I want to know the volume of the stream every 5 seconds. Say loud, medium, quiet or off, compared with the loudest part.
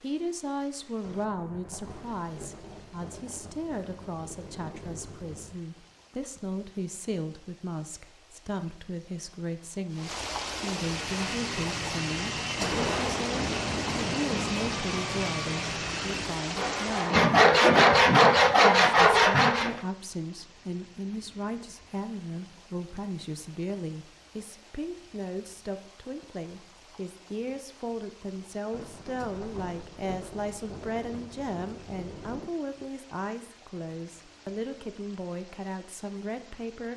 quiet, quiet, loud, loud, quiet, quiet, quiet, quiet.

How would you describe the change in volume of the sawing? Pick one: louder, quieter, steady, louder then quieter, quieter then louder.
louder.